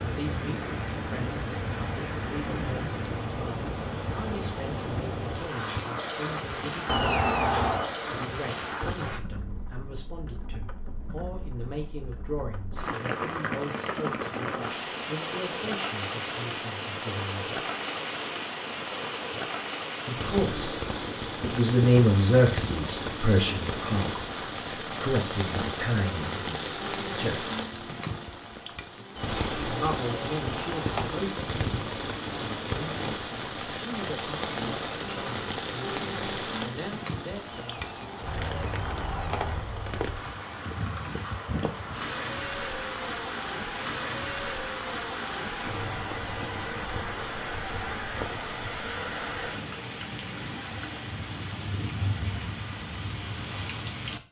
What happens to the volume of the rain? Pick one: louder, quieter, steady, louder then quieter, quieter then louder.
steady.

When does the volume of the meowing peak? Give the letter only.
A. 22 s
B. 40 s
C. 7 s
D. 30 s
C.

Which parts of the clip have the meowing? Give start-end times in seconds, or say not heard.
6.8-8.0, 29.1-31.1, 37.5-39.5.